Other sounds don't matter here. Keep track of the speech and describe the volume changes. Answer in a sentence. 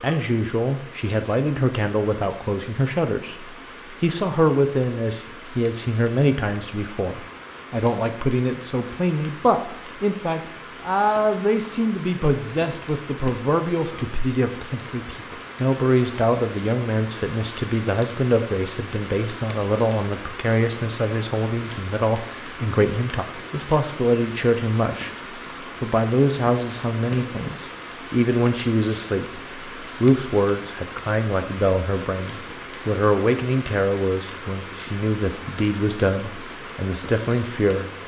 The loudness of the speech stays about the same.